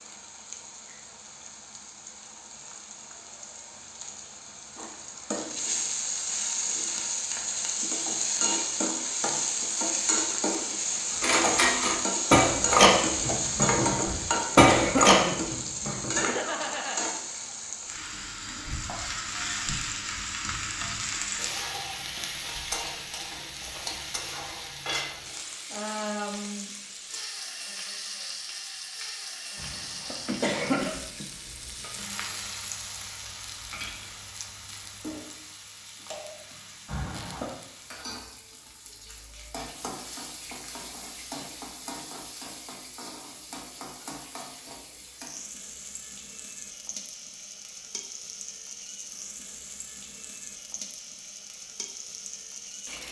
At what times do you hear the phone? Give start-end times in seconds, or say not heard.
16.1-17.2, 30.2-31.2.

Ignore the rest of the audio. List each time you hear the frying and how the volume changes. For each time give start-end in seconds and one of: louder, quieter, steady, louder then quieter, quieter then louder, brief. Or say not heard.
0.0-53.0 quieter.